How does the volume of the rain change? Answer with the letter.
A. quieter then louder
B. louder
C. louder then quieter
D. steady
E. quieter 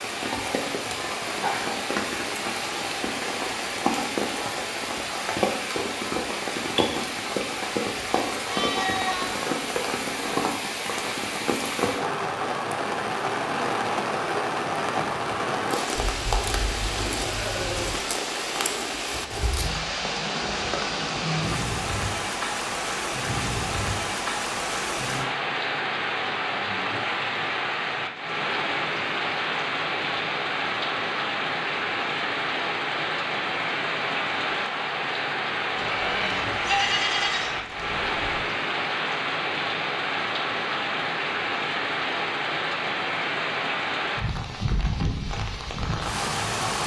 D.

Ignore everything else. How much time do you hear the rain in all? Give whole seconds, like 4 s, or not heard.
47 s.